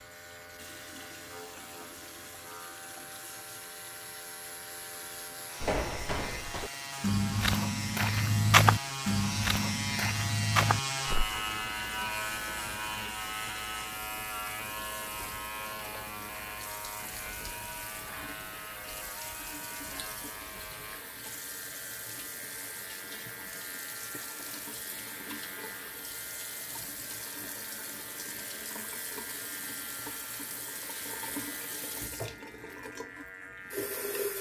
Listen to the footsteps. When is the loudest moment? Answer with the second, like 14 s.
9 s.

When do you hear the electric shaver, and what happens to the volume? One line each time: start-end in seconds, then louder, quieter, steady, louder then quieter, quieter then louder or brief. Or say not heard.
0.0-34.3 louder then quieter.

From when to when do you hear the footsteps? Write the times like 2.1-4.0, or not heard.
5.6-11.4.